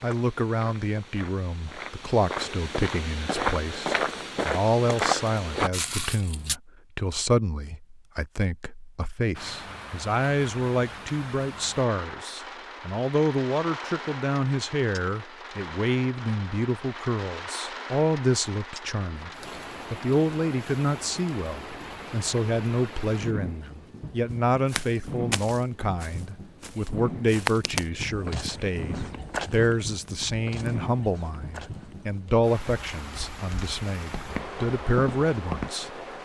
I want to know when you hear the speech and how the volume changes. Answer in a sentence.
The speech can be heard from 0.0 to 19.3 s, at a steady volume; and from 19.9 to 35.9 s, at a steady volume.